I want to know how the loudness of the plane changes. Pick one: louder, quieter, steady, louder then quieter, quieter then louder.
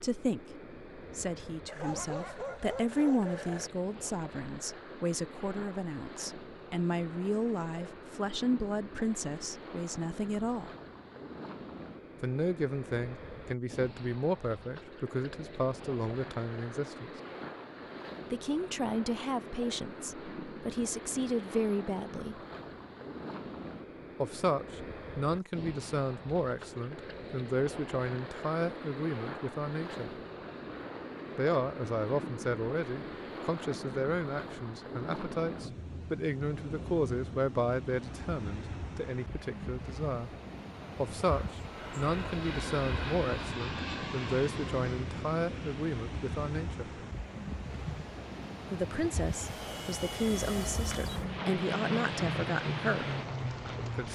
quieter then louder.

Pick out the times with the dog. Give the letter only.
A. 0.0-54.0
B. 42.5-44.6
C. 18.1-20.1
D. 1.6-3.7
D.